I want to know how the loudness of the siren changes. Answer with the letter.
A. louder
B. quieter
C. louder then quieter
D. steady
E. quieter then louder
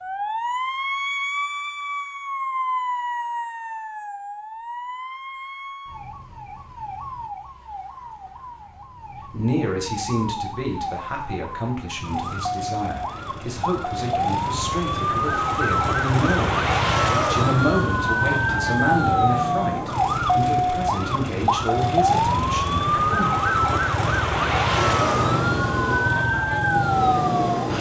E.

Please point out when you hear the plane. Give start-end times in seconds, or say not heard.
24.7-27.7.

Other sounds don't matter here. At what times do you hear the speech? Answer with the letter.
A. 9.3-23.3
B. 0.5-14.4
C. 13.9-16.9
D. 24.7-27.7
A.